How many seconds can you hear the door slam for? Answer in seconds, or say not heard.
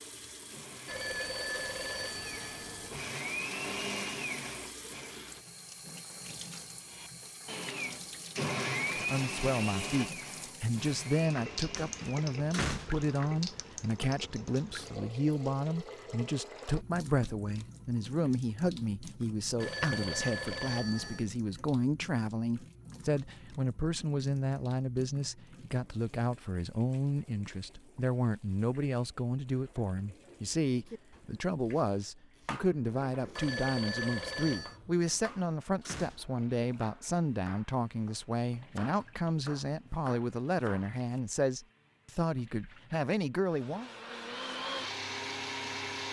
3 s.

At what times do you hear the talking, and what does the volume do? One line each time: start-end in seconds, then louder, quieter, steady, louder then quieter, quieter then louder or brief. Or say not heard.
8.9-43.9 steady.